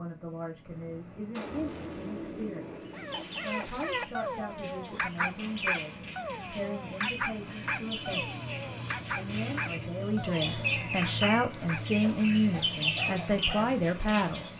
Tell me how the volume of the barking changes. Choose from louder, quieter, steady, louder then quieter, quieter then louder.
quieter.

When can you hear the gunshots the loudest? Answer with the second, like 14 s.
2 s.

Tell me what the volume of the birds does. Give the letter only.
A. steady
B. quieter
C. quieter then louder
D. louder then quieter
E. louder
E.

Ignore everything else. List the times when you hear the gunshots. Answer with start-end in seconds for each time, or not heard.
0.7-3.5.